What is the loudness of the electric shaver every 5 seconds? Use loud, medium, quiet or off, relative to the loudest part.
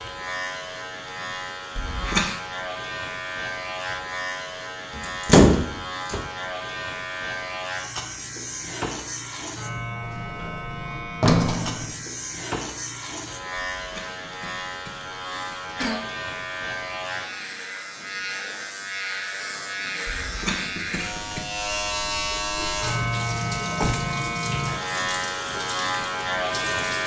medium, medium, medium, medium, loud, loud.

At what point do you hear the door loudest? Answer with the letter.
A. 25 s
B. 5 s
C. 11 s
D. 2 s
B.